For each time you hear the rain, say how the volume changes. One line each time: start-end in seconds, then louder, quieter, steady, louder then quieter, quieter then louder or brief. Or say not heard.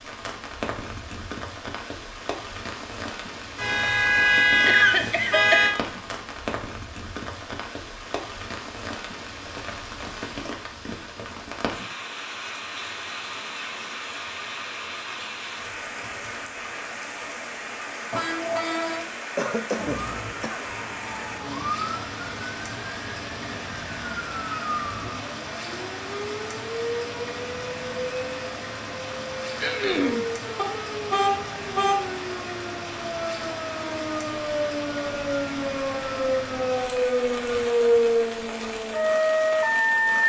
0.0-40.2 steady.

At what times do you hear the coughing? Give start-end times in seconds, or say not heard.
4.7-5.8, 19.4-20.6, 29.6-30.2.